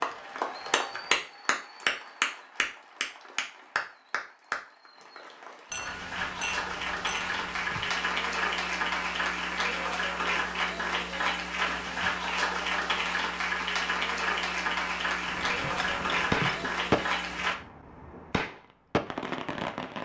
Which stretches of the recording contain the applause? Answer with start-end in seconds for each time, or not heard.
0.0-17.6.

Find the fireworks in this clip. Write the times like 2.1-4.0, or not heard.
15.2-20.0.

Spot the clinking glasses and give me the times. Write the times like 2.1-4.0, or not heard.
5.7-7.9, 15.3-16.7.